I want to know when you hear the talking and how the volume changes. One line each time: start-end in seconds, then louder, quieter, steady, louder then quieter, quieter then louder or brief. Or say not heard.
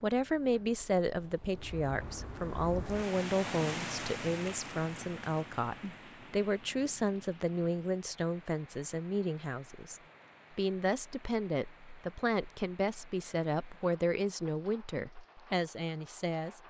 0.0-16.6 steady.